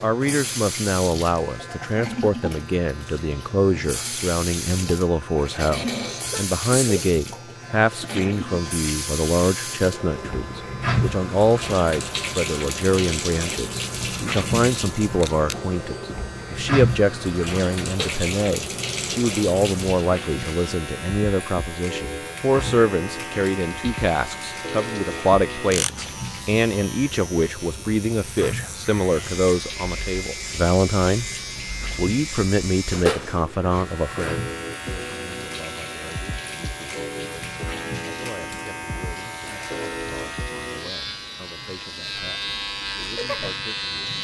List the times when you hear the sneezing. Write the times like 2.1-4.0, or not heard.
6.3-7.0.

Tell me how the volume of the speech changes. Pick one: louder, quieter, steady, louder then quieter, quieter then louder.
quieter.